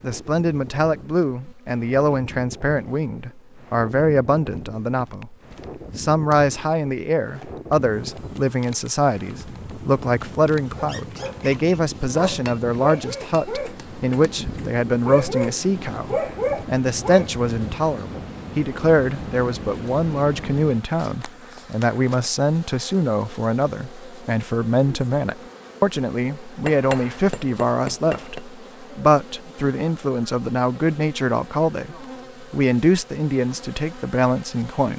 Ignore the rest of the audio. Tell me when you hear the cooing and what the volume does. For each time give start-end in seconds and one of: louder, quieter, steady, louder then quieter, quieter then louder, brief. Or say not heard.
not heard.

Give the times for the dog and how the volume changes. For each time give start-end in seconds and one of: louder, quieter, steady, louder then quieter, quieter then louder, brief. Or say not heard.
10.6-17.4 louder.